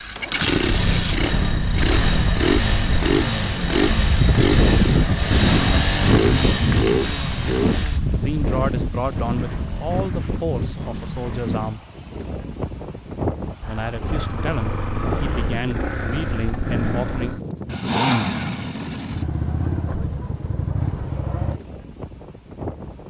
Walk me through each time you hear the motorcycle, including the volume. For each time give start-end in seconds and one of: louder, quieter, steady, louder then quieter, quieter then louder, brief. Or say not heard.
0.0-11.8 quieter
13.6-21.6 louder then quieter.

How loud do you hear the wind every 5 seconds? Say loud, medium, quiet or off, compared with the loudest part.
loud, loud, medium, medium, quiet.